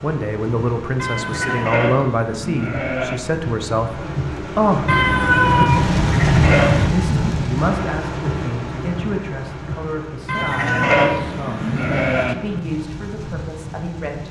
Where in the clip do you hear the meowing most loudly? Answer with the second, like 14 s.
5 s.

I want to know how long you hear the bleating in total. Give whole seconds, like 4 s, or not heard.
5 s.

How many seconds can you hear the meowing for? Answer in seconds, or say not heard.
5 s.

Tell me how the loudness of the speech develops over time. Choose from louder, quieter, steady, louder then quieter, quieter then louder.
quieter.